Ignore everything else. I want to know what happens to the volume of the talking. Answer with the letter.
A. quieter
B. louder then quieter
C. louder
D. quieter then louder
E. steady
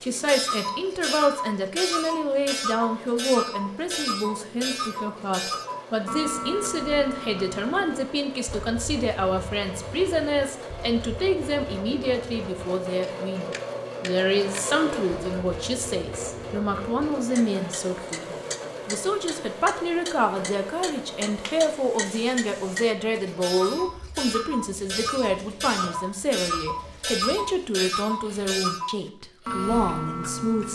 E.